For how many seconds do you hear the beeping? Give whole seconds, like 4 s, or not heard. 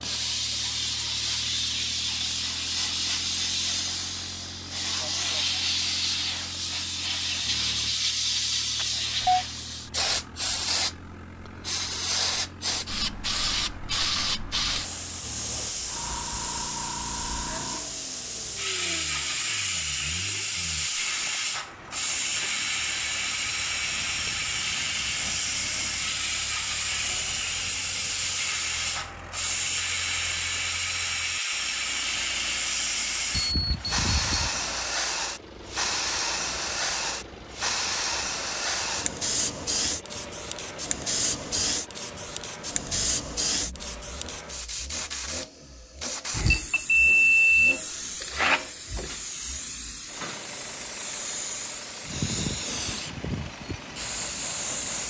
4 s.